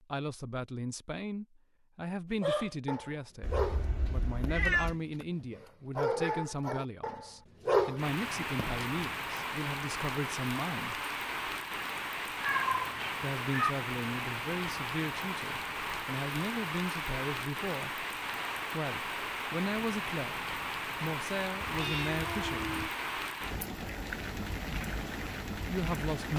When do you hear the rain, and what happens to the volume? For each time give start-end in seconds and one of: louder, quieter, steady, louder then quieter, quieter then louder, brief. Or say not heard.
8.0-26.3 steady.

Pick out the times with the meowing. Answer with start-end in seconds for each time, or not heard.
3.4-5.0, 12.4-13.8, 21.6-22.9.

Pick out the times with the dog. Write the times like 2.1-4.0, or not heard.
2.4-9.1.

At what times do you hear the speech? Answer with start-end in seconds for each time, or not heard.
0.0-10.9, 13.2-18.1, 18.7-22.9, 25.6-26.3.